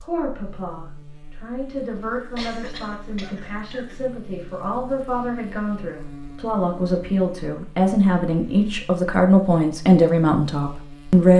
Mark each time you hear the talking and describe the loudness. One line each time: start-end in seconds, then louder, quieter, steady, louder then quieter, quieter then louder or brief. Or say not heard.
0.0-11.3 louder.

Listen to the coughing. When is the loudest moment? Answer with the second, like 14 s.
3 s.